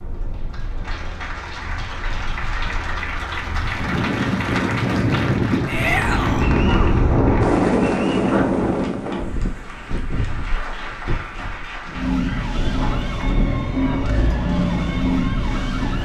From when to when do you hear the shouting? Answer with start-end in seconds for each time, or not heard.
5.7-6.5.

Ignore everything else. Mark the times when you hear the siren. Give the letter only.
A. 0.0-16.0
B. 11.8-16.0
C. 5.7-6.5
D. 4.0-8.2
B.